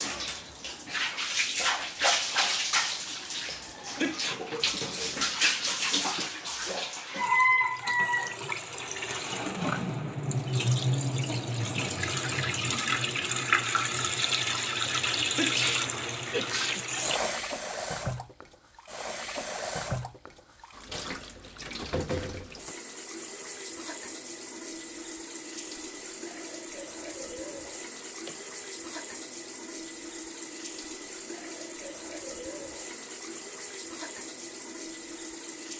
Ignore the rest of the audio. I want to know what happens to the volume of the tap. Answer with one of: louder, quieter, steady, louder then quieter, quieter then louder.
quieter.